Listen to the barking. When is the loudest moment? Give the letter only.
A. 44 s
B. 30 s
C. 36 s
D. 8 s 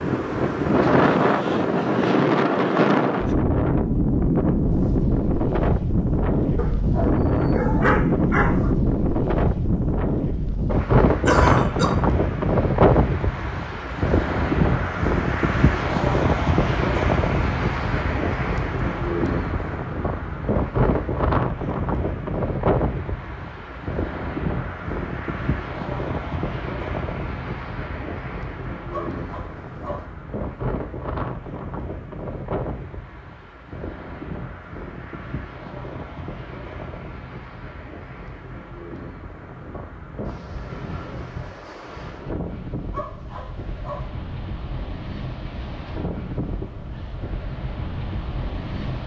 D.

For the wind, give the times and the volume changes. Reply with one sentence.
You can hear the wind from 0.0 to 49.0 s, getting quieter.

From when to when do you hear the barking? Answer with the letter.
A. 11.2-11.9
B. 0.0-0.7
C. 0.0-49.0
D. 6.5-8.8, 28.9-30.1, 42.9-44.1
D.